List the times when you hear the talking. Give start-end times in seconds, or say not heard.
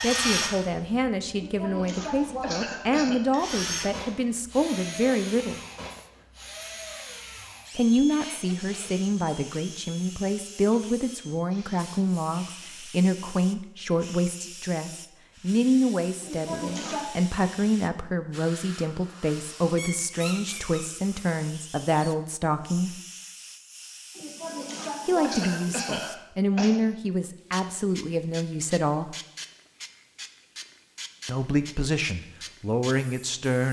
0.0-5.6, 7.8-23.0, 25.1-29.1, 31.2-33.6.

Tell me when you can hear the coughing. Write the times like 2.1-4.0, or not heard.
1.3-3.2, 16.2-17.1, 24.1-26.8.